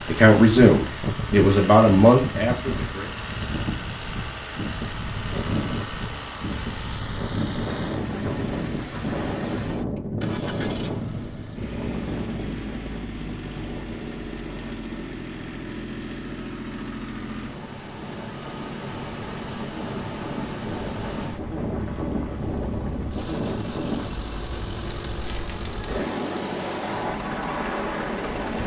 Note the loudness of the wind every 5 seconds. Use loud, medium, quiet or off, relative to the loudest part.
loud, loud, loud, medium, loud, loud.